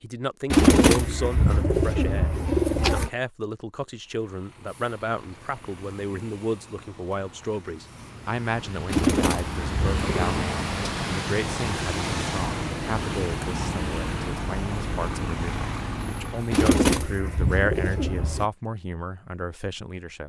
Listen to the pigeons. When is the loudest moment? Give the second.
1 s.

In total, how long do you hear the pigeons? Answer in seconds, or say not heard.
6 s.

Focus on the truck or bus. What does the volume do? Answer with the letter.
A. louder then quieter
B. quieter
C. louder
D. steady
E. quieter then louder
C.